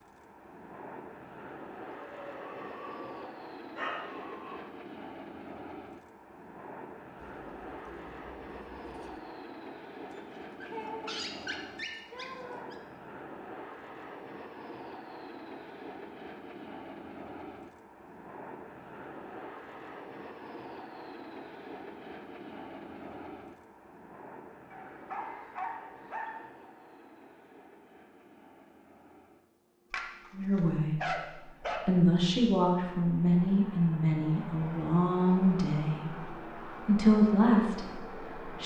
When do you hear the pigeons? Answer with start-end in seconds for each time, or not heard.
7.2-9.2.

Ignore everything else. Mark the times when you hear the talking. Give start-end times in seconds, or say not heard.
30.4-31.2, 31.9-38.6.